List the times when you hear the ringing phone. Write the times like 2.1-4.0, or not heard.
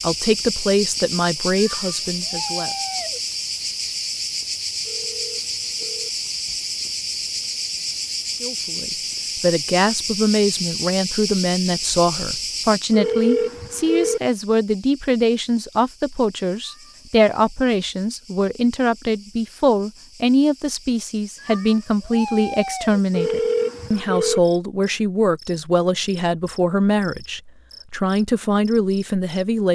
4.8-6.1, 12.9-14.2, 23.1-24.4.